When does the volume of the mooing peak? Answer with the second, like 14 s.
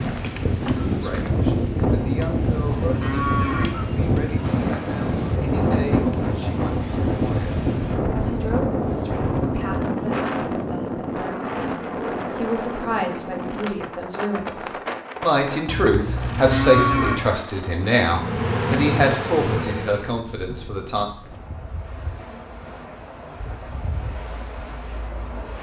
17 s.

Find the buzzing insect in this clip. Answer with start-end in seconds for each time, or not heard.
18.0-20.2.